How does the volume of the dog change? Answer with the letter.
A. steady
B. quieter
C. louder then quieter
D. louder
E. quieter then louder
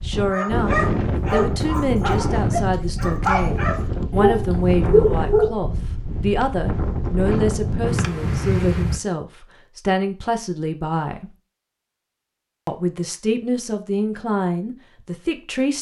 E.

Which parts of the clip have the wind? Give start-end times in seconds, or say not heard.
0.0-9.0.